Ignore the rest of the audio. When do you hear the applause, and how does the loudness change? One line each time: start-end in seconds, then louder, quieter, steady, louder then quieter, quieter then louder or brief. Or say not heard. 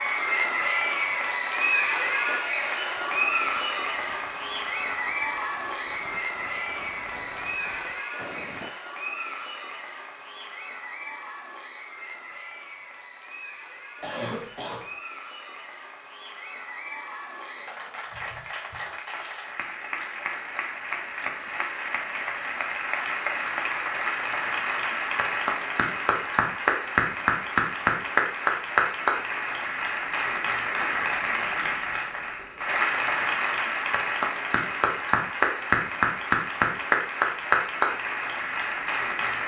0.0-39.4 quieter then louder.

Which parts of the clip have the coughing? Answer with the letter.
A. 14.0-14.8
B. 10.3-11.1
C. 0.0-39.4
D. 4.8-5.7
A.